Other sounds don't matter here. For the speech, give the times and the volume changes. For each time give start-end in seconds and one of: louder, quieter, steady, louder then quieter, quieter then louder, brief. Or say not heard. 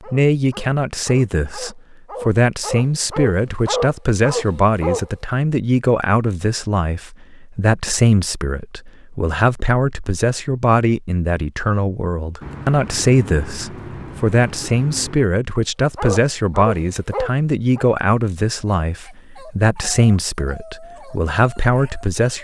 0.1-22.4 steady.